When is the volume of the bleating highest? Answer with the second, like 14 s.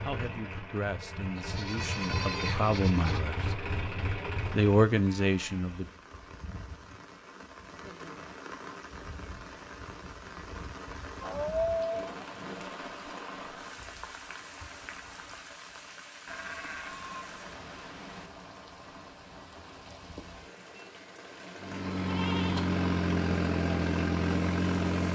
12 s.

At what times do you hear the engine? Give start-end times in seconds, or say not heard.
0.0-4.9, 21.6-25.0.